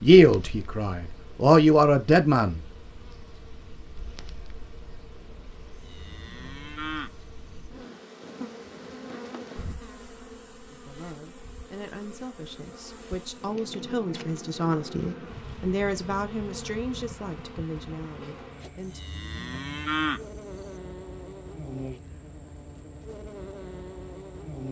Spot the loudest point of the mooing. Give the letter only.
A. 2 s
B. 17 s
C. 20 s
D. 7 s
C.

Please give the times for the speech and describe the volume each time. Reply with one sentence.
You can hear the speech briefly from 0.0 to 2.6 s; and from 10.7 to 19.0 s, getting louder then quieter.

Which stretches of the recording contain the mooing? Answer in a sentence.
You can hear the mooing from 5.8 to 7.7 s and from 18.9 to 20.8 s.